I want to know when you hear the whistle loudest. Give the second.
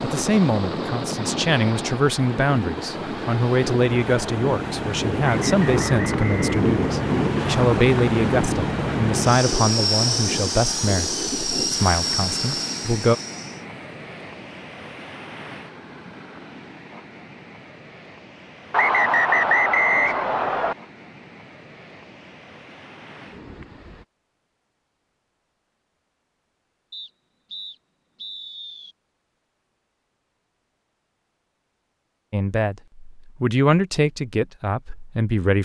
19 s.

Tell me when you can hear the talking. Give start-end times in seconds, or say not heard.
0.0-13.2, 32.3-35.5.